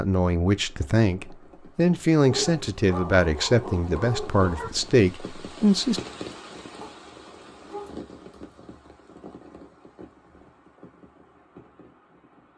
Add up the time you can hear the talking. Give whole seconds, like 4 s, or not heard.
6 s.